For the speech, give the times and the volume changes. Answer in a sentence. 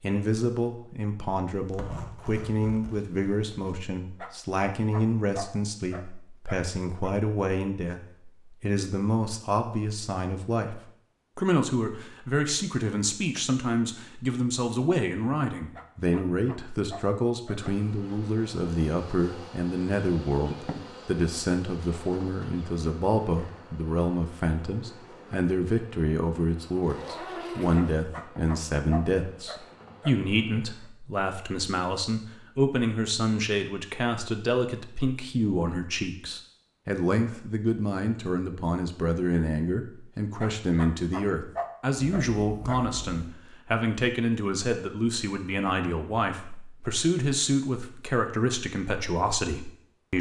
You can hear the speech from 0.0 to 50.1 s, at a steady volume.